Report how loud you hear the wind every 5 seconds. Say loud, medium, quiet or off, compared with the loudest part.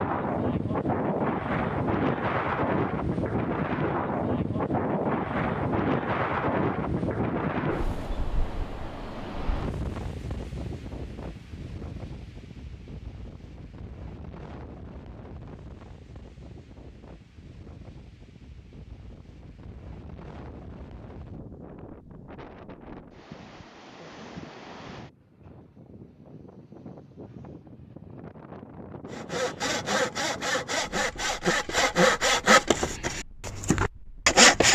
loud, loud, quiet, quiet, quiet, quiet, quiet.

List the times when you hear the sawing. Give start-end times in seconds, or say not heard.
29.1-34.6.